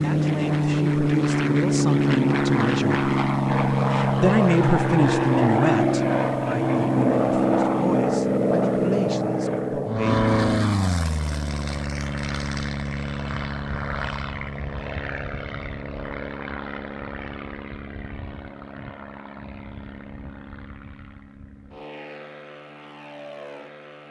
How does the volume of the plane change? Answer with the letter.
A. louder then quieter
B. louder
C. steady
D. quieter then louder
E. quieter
E.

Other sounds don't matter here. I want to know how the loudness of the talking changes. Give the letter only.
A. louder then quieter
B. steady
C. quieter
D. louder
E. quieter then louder
A.